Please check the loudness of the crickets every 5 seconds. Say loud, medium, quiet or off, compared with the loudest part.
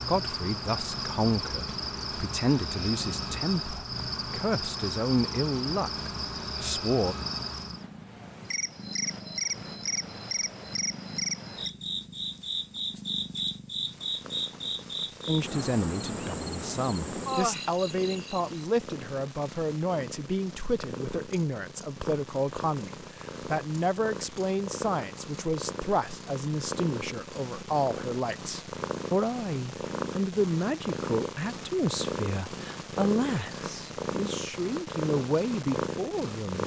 loud, loud, loud, loud, off, off, off, off.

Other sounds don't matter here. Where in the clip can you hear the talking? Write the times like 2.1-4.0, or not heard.
0.1-7.2, 15.2-36.6.